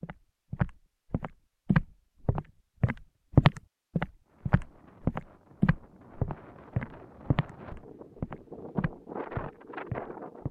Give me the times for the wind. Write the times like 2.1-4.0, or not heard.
4.2-10.4.